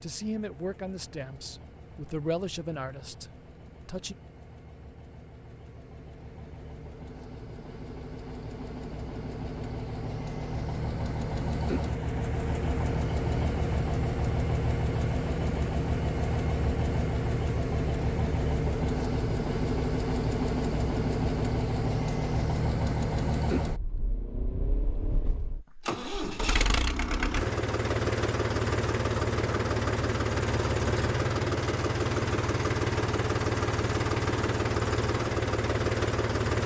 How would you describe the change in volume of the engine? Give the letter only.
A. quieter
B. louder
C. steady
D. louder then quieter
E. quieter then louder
B.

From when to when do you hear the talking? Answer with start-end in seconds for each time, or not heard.
0.0-4.2.